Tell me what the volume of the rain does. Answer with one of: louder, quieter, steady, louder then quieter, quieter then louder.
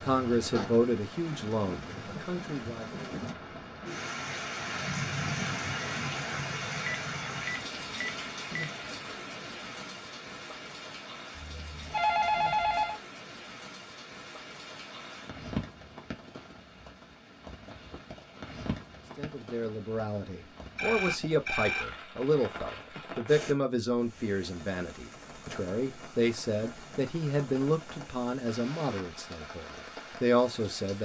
quieter.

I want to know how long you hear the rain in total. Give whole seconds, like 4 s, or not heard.
31 s.